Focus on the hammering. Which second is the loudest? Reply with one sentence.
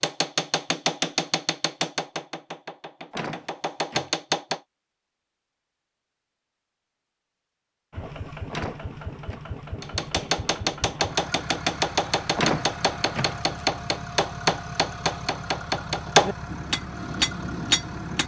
The loudest moment of the hammering is at 16 seconds.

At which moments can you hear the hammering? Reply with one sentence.
The hammering can be heard from 0.0 to 4.6 s and from 9.8 to 18.2 s.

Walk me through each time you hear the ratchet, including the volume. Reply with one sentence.
You can't hear the ratchet here.